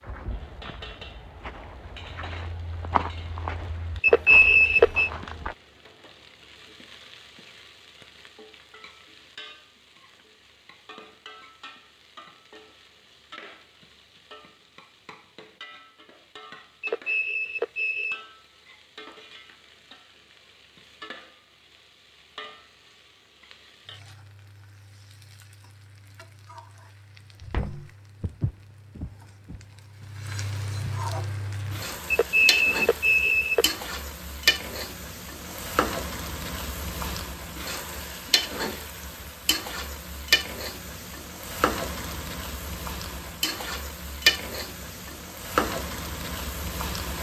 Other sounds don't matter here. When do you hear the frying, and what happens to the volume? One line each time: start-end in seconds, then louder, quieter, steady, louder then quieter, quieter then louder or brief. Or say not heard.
0.1-47.1 louder.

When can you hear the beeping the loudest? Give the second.
4 s.